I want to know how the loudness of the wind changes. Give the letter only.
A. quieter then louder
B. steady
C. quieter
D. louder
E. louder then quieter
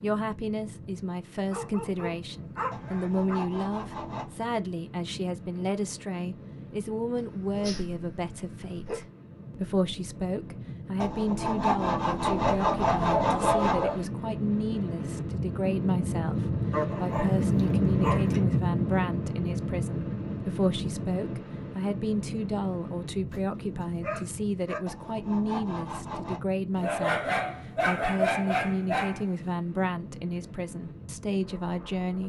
E.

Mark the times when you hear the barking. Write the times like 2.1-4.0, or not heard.
1.4-3.4, 7.2-9.1, 12.3-14.1, 16.7-18.4, 23.3-24.8, 26.8-29.3.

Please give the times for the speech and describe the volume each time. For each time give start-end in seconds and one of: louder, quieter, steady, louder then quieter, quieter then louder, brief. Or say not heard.
0.0-32.2 steady.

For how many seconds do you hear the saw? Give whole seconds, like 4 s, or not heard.
6 s.